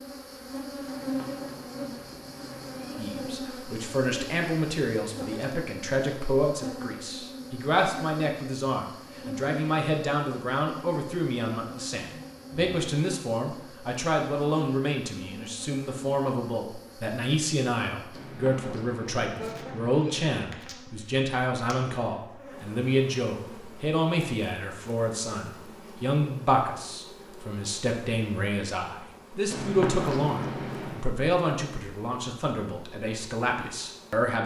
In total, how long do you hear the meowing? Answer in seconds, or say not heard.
6 s.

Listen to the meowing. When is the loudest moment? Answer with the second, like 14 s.
30 s.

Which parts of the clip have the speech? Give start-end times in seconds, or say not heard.
3.0-34.4.